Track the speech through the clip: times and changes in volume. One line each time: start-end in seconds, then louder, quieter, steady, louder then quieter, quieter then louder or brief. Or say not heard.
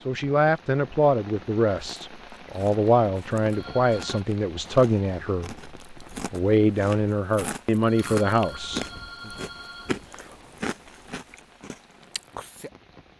0.1-9.3 steady.